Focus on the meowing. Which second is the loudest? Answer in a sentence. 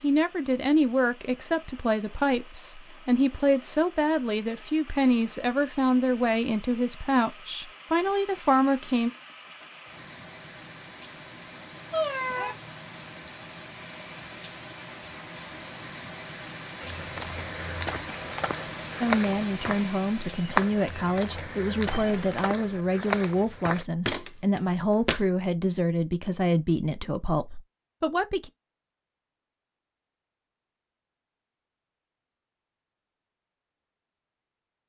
The volume of the meowing peaks at 12 seconds.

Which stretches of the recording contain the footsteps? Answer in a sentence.
The footsteps can be heard from 16.8 to 25.2 s.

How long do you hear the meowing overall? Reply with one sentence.
The meowing can be heard for 2 seconds in total.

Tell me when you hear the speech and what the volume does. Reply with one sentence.
You can hear the speech from 0.0 to 9.1 s, at a steady volume; and from 19.0 to 28.5 s, at a steady volume.